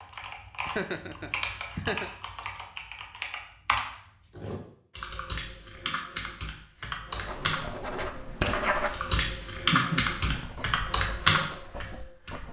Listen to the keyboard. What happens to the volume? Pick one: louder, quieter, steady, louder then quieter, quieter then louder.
louder.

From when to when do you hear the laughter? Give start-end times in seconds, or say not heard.
0.7-2.1, 9.1-10.5.